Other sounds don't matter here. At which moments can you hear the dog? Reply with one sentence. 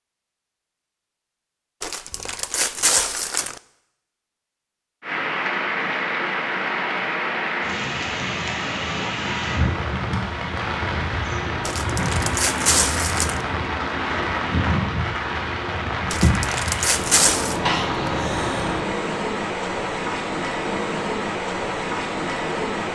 The dog can't be heard in this clip.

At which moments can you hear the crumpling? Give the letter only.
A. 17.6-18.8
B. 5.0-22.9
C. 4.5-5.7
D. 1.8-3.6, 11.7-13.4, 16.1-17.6
D.